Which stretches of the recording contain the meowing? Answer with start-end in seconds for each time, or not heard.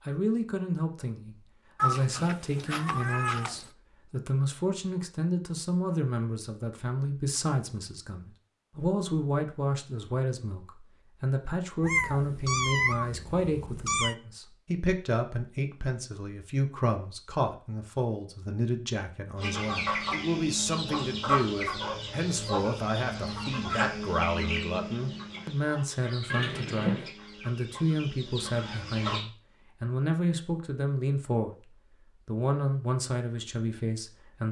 1.8-3.6, 11.8-14.2, 26.3-27.1.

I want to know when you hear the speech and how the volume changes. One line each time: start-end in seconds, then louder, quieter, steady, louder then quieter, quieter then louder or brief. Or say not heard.
0.1-34.4 steady.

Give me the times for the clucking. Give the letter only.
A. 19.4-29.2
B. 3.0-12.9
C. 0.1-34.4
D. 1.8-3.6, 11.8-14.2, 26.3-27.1
A.